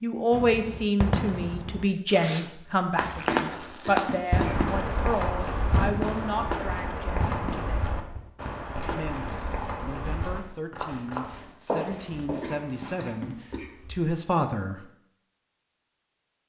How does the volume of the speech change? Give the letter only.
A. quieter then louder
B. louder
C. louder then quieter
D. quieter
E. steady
A.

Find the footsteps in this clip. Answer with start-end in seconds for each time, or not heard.
4.3-13.2.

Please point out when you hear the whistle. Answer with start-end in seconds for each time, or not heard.
not heard.